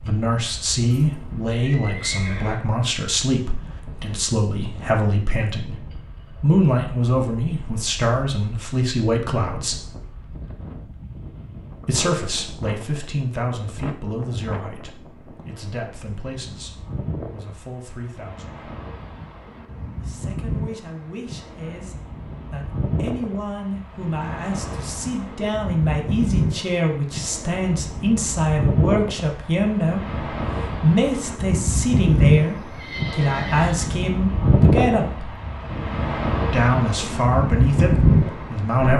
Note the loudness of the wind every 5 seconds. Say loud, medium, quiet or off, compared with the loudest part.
quiet, quiet, quiet, quiet, medium, medium, loud, loud.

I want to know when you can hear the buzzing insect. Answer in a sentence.
The buzzing insect can't be heard in this clip.